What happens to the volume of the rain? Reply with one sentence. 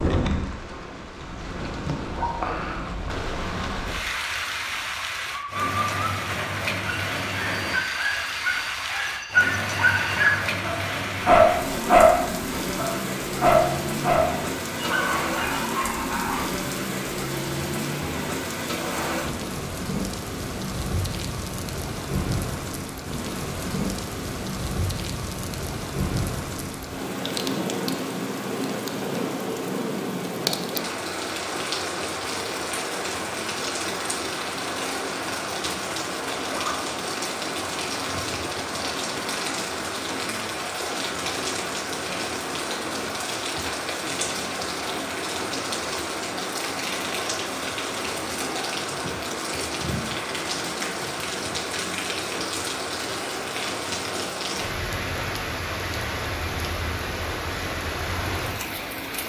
The loudness of the rain stays about the same.